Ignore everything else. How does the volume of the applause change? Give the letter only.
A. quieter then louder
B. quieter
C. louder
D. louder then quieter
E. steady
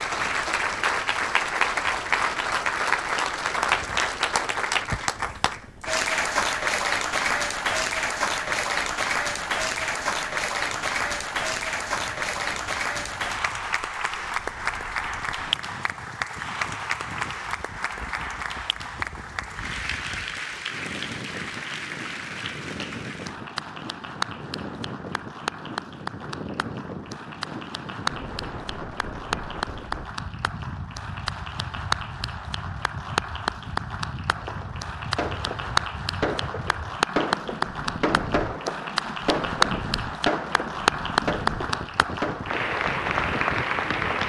A.